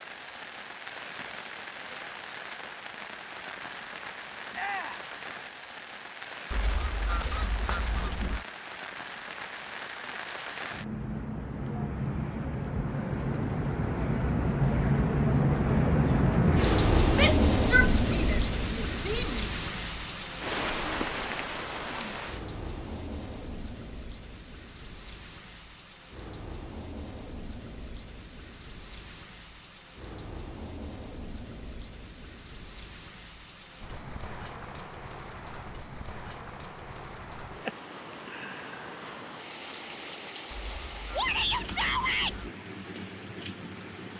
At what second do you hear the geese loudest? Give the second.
7 s.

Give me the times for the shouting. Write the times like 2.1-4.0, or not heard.
4.5-5.0, 17.1-19.4, 41.1-42.4.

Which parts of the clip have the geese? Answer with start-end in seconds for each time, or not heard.
6.5-8.4, 40.5-42.5.